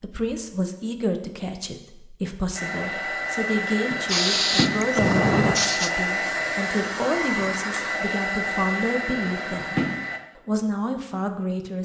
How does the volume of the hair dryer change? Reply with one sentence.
The loudness of the hair dryer stays about the same.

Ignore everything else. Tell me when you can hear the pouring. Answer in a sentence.
You can't hear the pouring here.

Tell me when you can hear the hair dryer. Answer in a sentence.
The hair dryer can be heard from 2.5 to 10.2 s.